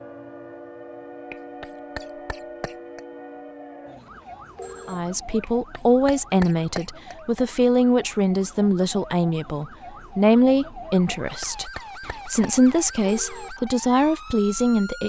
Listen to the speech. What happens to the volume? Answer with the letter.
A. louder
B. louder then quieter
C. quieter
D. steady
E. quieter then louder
D.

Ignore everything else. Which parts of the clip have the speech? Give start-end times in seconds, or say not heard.
4.8-15.0.